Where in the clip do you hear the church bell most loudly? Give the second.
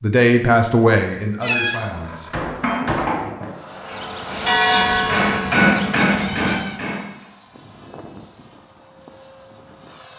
5 s.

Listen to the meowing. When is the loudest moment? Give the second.
2 s.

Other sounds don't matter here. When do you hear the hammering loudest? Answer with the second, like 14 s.
6 s.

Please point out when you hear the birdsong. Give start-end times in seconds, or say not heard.
not heard.